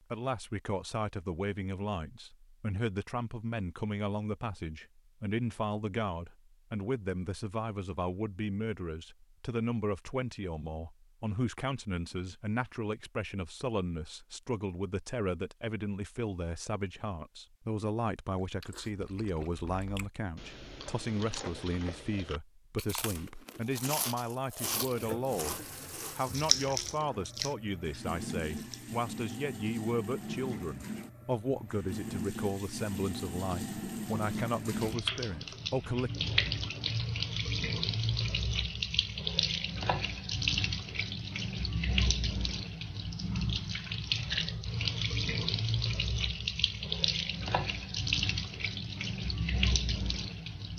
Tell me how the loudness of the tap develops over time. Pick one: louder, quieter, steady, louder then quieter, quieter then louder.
louder.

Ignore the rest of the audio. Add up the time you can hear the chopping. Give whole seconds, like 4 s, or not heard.
not heard.